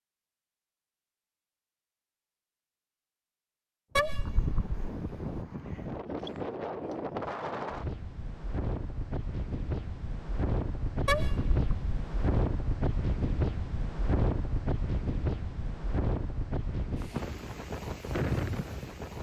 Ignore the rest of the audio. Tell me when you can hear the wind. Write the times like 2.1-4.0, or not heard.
3.9-19.1.